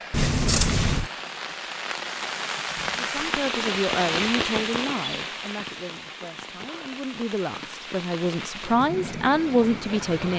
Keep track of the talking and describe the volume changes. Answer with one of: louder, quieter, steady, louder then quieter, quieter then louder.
quieter then louder.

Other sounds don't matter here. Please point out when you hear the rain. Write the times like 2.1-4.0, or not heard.
0.0-10.3.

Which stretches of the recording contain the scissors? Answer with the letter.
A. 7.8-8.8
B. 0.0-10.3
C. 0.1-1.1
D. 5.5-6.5
C.